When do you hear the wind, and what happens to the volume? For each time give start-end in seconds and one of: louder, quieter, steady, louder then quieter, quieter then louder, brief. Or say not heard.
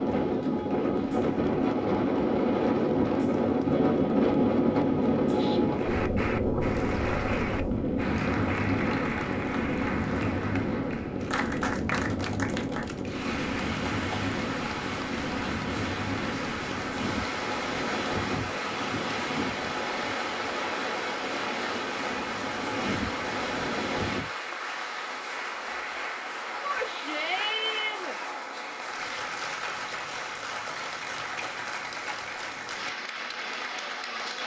0.0-24.3 quieter.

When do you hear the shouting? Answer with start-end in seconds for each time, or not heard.
26.6-28.1.